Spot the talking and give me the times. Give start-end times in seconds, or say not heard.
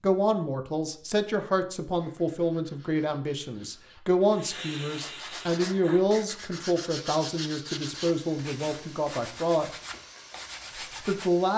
0.0-9.7, 11.0-11.5.